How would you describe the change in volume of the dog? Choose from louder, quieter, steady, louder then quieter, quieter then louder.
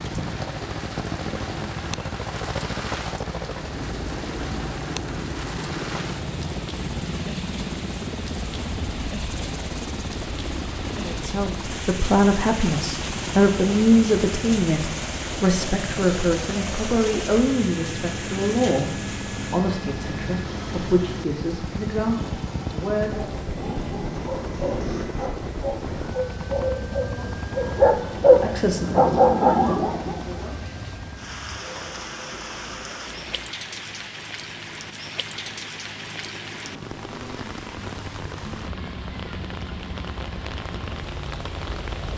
louder.